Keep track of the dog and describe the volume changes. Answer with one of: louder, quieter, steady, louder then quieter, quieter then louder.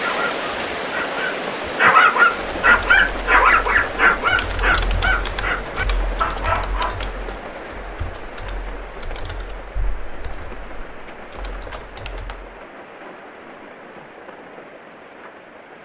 louder then quieter.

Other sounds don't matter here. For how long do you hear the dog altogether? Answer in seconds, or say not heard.
7 s.